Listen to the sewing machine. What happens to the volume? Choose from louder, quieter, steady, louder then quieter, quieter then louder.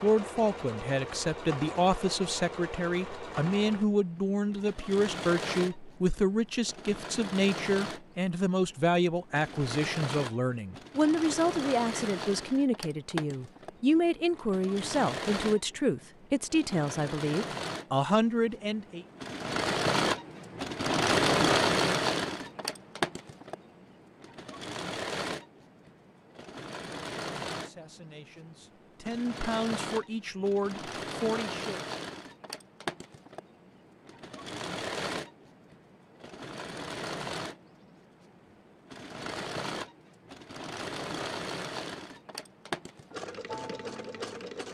louder then quieter.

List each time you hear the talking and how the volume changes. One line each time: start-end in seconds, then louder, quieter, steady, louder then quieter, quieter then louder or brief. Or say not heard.
0.0-19.1 steady
27.5-31.8 louder.